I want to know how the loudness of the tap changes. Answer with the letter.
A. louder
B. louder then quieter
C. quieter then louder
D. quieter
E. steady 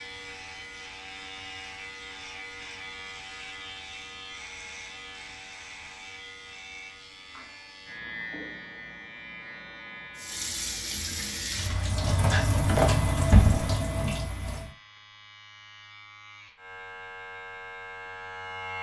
B.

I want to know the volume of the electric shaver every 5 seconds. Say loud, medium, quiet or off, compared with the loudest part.
loud, loud, medium, loud.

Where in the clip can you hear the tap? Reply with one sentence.
The tap can be heard from 10.2 to 14.7 s.